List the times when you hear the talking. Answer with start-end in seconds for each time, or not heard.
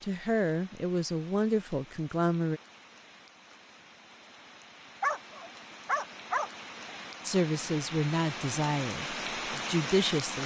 0.0-2.6, 7.2-10.4.